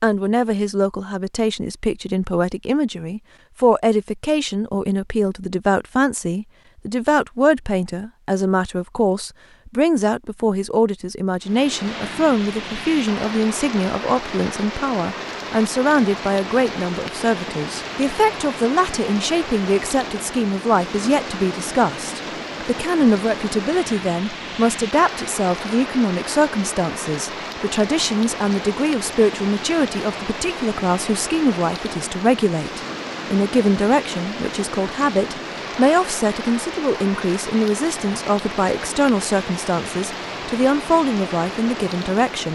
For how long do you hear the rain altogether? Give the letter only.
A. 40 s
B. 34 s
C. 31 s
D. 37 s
C.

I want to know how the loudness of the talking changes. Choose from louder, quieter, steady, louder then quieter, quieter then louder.
steady.